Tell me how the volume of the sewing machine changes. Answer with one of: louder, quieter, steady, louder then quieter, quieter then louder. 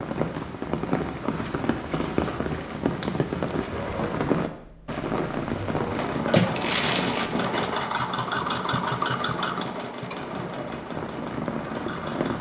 louder then quieter.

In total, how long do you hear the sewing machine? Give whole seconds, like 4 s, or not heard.
9 s.